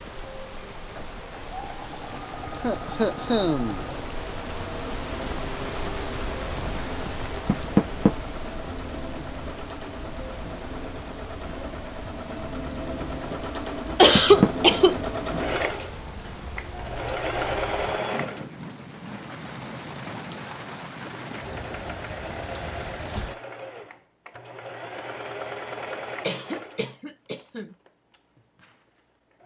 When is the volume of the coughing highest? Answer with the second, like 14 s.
14 s.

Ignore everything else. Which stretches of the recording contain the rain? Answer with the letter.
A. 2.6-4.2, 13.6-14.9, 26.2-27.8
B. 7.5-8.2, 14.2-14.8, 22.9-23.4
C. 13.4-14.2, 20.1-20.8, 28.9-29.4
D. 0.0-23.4
D.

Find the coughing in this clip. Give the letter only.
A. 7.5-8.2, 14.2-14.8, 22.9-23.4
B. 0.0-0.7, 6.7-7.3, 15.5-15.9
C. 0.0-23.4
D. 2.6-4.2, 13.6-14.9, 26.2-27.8
D.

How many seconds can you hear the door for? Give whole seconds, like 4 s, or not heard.
2 s.